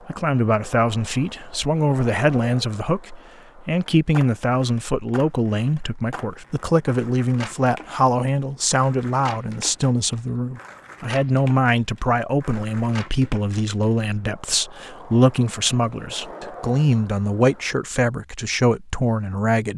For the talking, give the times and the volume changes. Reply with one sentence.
The talking can be heard from 0.1 to 19.7 s, at a steady volume.